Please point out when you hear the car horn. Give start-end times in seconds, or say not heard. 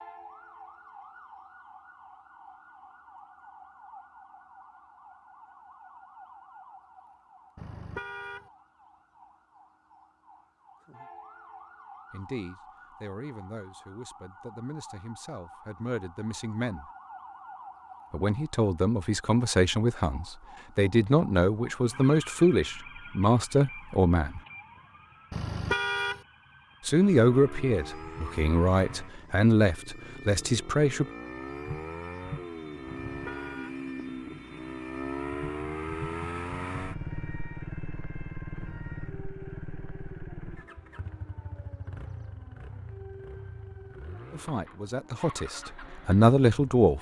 7.5-8.5, 25.3-26.2, 32.9-33.8.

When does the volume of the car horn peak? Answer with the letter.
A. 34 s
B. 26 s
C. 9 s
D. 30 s
B.